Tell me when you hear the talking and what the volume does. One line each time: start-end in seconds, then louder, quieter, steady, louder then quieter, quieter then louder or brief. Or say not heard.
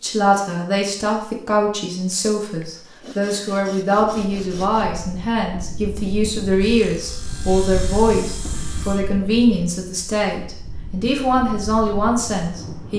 0.0-12.9 steady.